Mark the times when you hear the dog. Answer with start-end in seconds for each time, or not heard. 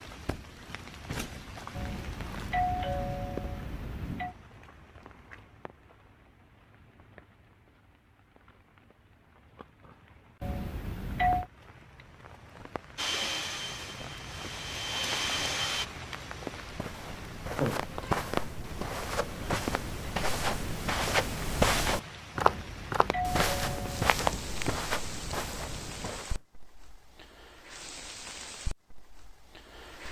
not heard.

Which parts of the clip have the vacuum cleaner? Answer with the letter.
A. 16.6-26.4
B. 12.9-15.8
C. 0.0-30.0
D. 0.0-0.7
B.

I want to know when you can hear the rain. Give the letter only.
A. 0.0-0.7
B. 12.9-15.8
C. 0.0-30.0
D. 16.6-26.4
C.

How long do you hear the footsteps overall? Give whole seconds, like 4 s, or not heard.
10 s.